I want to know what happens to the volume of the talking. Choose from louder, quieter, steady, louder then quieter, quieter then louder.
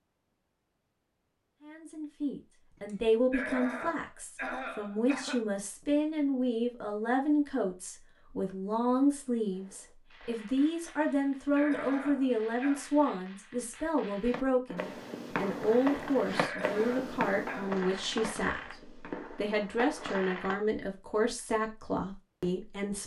steady.